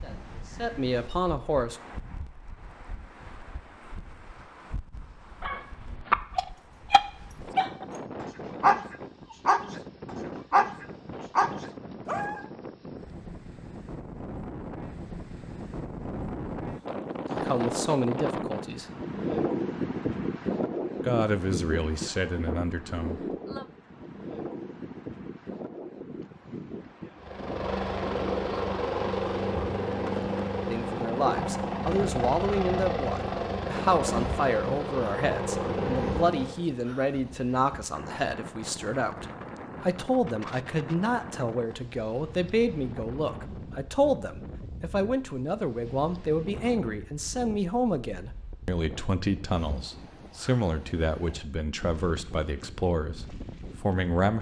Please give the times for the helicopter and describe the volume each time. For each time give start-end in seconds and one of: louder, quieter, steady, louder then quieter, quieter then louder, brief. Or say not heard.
27.1-36.6 steady.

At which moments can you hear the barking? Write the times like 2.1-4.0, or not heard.
5.4-12.4.